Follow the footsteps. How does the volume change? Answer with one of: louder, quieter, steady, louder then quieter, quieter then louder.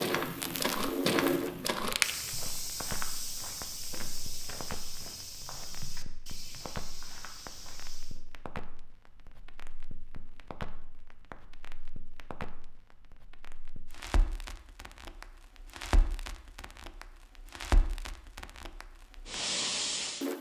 quieter.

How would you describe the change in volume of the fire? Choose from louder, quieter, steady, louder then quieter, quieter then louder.
quieter then louder.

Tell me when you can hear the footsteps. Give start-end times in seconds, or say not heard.
0.0-8.2.